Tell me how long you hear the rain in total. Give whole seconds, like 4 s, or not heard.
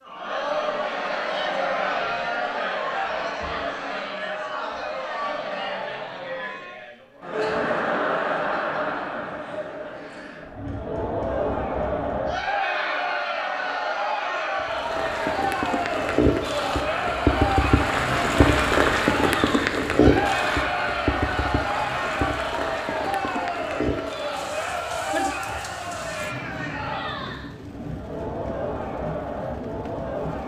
16 s.